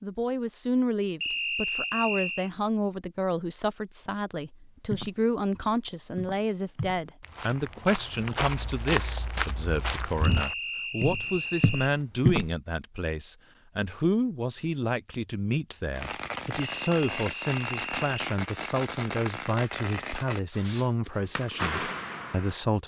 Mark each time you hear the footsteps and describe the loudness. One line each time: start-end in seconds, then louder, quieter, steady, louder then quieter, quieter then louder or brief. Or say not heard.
4.9-12.5 louder.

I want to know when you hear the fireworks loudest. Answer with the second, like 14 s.
22 s.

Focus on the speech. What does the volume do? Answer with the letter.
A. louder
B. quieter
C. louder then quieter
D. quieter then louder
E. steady
E.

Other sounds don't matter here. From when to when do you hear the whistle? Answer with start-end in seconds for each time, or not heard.
1.2-2.5, 10.2-11.9, 16.6-18.1.